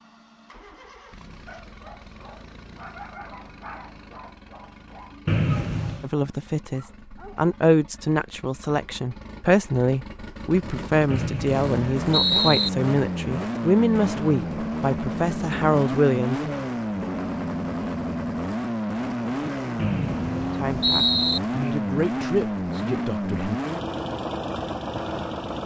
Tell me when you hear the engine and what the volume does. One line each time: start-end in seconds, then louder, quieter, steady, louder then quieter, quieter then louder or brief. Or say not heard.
0.0-25.6 louder.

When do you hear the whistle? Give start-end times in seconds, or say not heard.
5.2-6.1, 11.1-12.7, 19.8-21.4.